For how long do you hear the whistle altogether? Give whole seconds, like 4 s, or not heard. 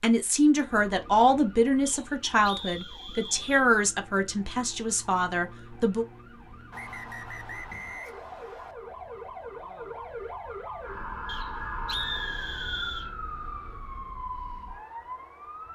6 s.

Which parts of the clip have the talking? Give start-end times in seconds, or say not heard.
0.0-6.0.